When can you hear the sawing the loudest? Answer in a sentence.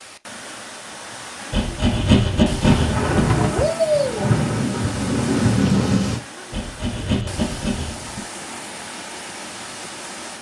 The loudest moment of the sawing is at 2 seconds.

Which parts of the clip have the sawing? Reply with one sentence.
The sawing can be heard from 1.5 to 3.4 s and from 6.5 to 8.2 s.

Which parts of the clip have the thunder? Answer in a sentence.
The thunder can be heard from 2.6 to 6.2 s.